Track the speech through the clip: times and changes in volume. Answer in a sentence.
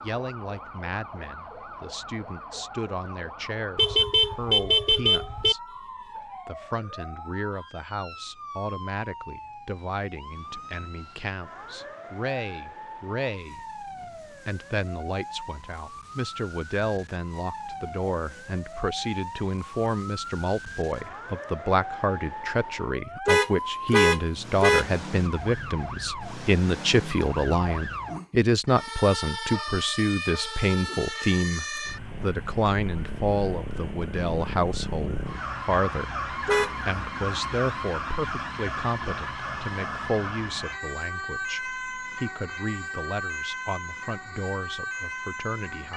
You can hear the speech from 0.0 to 45.9 s, getting louder then quieter.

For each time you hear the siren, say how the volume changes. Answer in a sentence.
The siren can be heard from 0.0 to 45.9 s, getting louder.